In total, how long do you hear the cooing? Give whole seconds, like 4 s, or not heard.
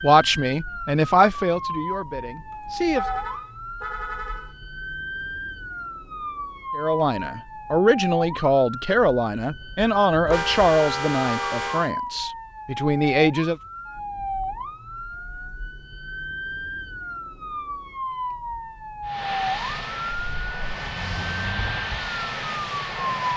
not heard.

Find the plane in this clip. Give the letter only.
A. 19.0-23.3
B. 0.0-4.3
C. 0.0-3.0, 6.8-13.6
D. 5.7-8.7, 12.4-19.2
A.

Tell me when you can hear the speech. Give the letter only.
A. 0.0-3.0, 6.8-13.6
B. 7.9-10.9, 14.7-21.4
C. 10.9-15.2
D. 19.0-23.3
A.